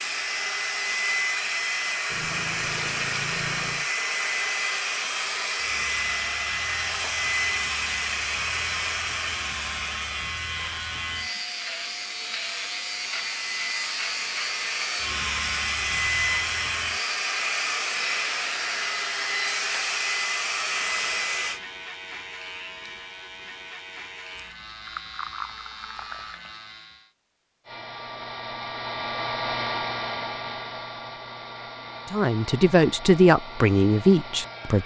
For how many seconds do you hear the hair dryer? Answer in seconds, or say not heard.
29 s.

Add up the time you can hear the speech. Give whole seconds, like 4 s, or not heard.
3 s.